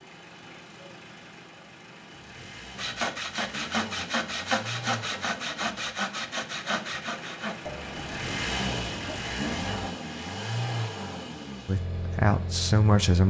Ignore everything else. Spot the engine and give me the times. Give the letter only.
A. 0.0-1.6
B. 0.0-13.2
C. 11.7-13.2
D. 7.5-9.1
B.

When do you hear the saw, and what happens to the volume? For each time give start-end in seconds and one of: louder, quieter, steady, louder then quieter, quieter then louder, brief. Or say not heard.
2.8-9.9 quieter.